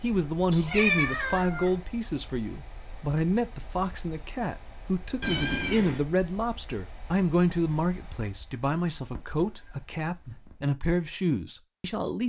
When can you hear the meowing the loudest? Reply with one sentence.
The loudest moment of the meowing is at 1 second.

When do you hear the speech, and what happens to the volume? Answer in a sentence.
You can hear the speech from 0.0 to 12.2 s, at a steady volume.